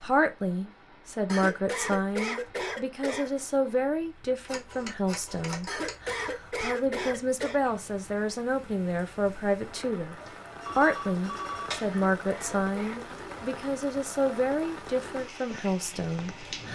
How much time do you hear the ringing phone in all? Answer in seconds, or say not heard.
3 s.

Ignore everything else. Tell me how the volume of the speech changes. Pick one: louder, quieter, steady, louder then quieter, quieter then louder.
steady.